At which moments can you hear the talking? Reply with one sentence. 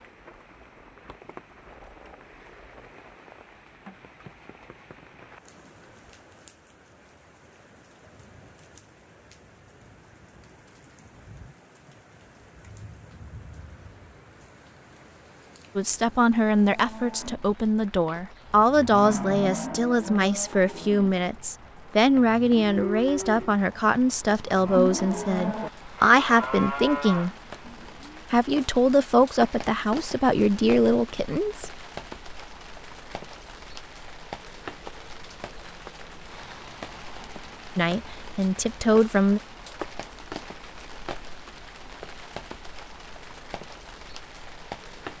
You can hear the talking from 15.8 to 27.3 s, from 28.3 to 31.7 s and from 37.8 to 39.4 s.